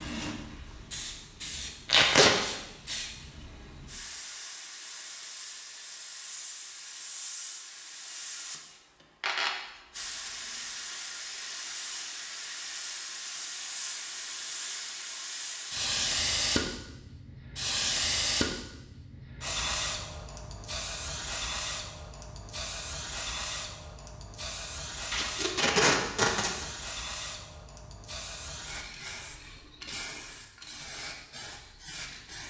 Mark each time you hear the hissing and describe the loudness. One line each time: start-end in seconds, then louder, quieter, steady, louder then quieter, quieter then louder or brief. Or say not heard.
0.0-32.4 louder then quieter.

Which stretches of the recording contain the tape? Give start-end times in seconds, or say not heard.
1.9-2.4, 25.1-26.6.